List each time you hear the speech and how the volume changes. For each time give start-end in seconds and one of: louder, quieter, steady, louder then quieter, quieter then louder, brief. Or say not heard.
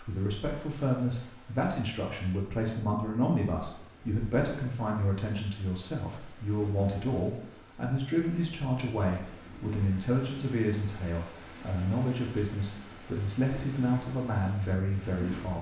0.0-15.5 steady.